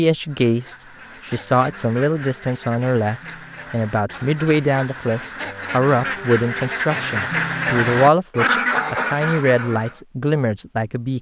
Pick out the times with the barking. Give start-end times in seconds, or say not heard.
not heard.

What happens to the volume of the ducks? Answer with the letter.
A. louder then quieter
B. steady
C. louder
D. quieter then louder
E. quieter
C.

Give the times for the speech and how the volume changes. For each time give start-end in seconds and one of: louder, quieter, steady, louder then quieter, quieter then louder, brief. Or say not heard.
0.0-11.1 steady.